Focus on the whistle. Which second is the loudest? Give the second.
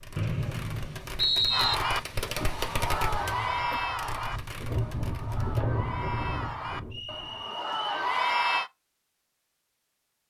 1 s.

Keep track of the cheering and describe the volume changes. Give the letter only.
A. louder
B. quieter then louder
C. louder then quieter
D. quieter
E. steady
B.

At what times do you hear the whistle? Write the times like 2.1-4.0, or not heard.
0.1-1.8, 6.9-7.9.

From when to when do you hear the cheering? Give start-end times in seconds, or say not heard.
1.5-8.7.